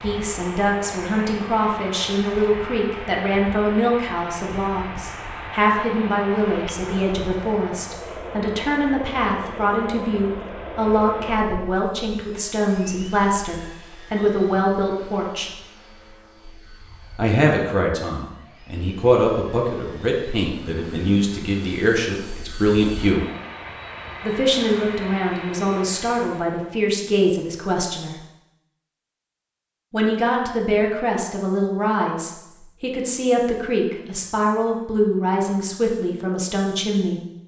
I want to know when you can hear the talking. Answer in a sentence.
The talking can be heard from 0.0 to 15.5 s, from 17.1 to 23.2 s, from 24.2 to 28.1 s and from 29.9 to 37.2 s.